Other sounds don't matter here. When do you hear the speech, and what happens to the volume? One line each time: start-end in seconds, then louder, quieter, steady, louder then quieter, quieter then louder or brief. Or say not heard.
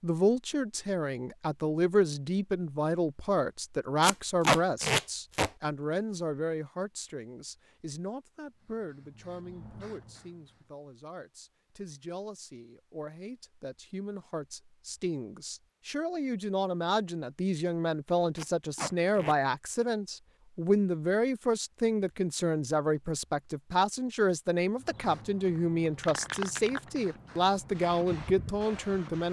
0.0-29.2 quieter then louder.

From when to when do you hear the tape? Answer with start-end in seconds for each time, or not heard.
4.0-5.5, 18.4-19.4.